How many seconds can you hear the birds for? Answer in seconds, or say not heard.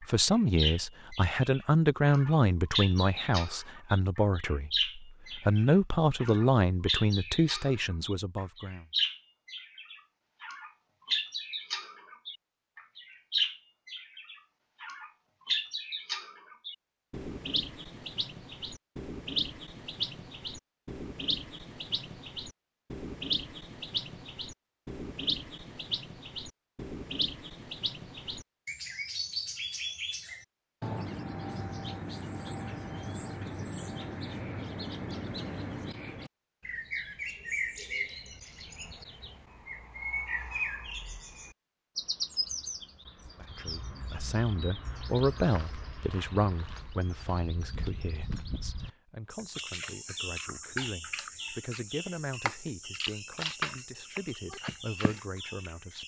56 s.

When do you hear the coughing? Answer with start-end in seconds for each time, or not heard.
not heard.